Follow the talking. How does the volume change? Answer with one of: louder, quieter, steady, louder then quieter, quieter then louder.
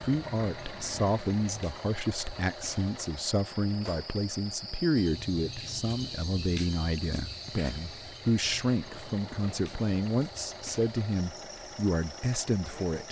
steady.